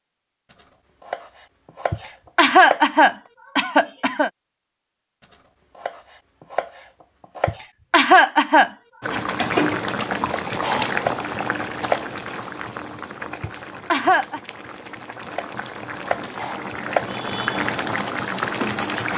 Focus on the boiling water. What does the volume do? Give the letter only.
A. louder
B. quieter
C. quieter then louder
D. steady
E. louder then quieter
C.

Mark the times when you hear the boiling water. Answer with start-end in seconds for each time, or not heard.
9.0-19.1.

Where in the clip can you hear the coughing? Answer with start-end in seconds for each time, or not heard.
1.9-4.3, 7.5-9.2, 13.4-14.4.